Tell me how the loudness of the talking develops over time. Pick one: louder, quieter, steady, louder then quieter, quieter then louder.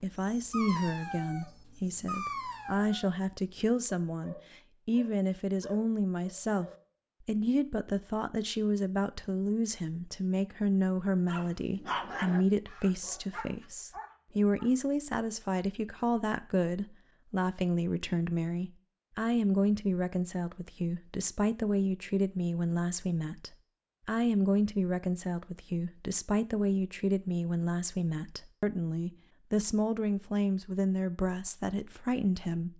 steady.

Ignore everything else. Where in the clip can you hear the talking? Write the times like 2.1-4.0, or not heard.
0.0-32.7.